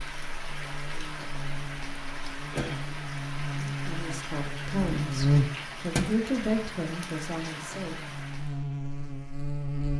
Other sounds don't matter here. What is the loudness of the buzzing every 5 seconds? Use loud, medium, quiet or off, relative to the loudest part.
medium, loud.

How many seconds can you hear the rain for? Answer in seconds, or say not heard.
9 s.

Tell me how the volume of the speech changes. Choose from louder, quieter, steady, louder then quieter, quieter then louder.
louder then quieter.